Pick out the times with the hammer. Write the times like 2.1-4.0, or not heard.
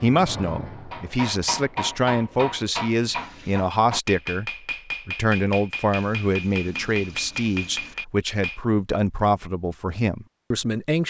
0.7-8.6.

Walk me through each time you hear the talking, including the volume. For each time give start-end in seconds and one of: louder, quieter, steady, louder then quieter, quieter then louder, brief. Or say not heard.
0.0-11.0 steady.